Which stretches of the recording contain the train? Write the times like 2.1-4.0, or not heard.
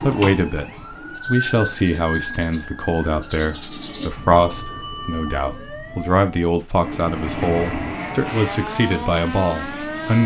6.8-10.2.